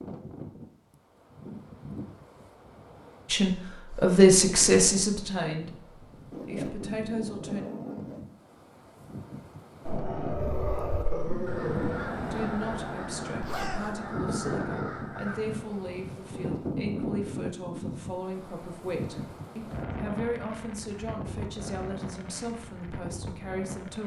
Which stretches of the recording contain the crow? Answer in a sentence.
You can hear the crow from 10.3 to 15.6 s.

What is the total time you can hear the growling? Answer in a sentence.
The growling can be heard for 2 seconds in total.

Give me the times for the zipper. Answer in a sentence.
The zipper can be heard from 6.3 to 8.2 s and from 13.4 to 13.8 s.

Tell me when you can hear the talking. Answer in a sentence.
You can hear the talking from 3.3 to 7.7 s and from 12.3 to 24.0 s.